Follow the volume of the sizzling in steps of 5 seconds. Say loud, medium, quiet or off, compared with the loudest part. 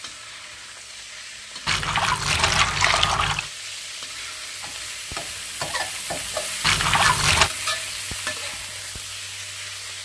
medium, loud.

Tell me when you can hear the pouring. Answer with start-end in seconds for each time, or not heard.
1.6-3.5, 6.6-7.5.